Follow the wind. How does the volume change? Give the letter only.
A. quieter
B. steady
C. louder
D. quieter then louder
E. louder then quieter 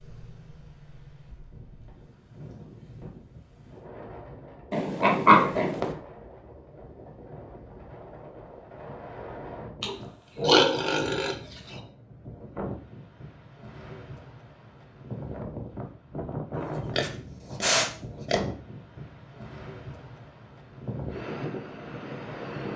C.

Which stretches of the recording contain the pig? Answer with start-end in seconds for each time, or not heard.
4.7-6.0, 9.8-11.3, 16.6-18.4.